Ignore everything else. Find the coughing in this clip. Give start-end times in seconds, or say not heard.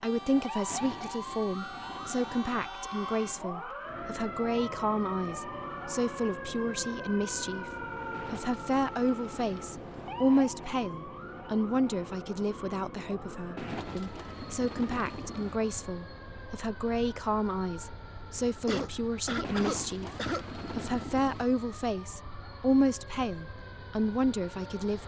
18.6-20.4.